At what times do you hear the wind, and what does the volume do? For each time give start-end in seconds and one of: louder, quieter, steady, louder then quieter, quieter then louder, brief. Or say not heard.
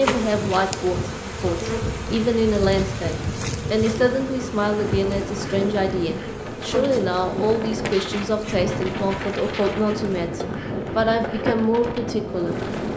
0.0-12.9 steady.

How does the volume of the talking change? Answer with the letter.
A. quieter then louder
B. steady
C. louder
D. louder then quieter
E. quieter
B.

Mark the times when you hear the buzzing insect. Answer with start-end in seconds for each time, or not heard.
0.0-12.9.